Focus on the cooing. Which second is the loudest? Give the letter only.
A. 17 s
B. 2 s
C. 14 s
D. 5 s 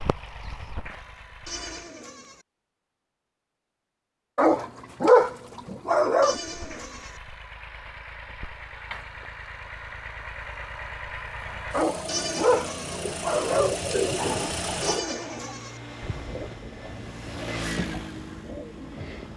C.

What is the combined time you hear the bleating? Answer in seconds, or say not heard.
4 s.